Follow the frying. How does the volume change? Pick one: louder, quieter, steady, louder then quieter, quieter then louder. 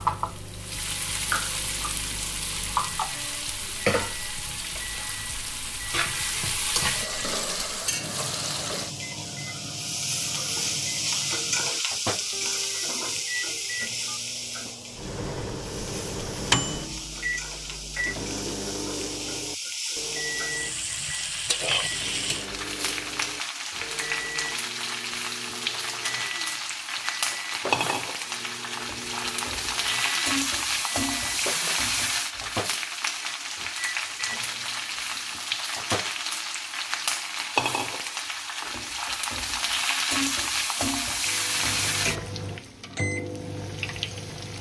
steady.